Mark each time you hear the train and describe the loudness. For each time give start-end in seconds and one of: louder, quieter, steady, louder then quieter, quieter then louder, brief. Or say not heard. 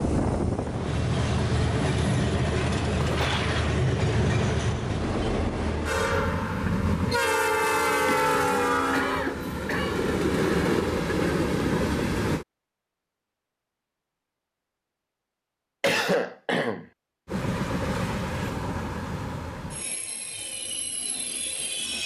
0.0-12.4 steady
17.2-22.0 quieter.